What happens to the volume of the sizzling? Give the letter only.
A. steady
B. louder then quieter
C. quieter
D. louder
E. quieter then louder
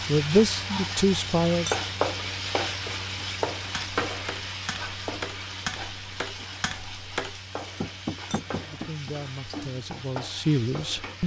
C.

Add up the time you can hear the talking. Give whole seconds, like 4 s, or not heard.
4 s.